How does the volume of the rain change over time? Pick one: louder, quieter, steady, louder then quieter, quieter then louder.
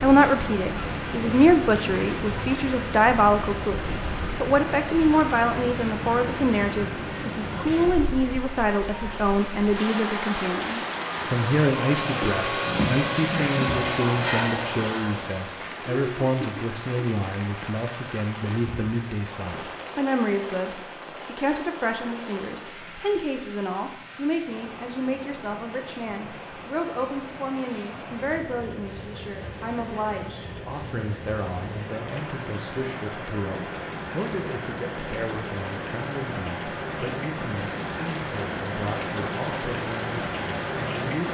quieter then louder.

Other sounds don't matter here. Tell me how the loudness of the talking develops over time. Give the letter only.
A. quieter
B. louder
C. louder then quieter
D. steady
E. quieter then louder
A.